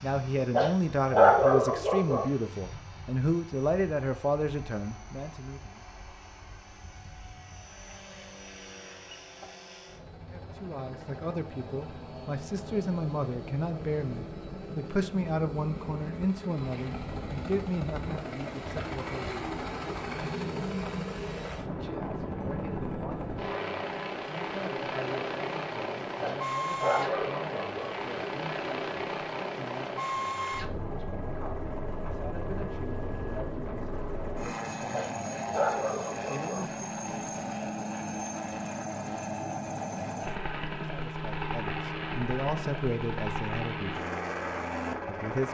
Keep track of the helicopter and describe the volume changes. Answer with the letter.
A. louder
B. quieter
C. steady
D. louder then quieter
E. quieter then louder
A.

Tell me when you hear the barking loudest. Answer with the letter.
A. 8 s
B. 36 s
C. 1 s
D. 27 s
C.